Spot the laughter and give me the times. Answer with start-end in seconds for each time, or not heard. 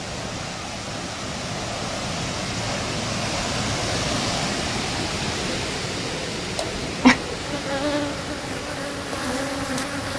6.5-7.2.